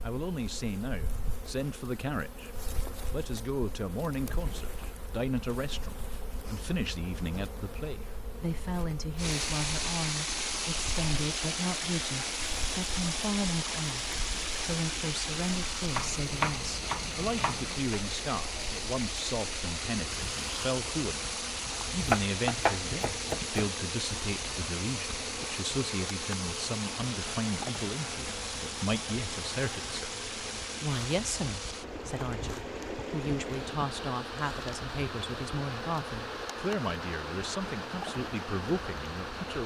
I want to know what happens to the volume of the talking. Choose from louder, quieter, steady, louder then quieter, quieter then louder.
steady.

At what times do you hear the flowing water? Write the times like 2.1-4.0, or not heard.
9.2-39.6.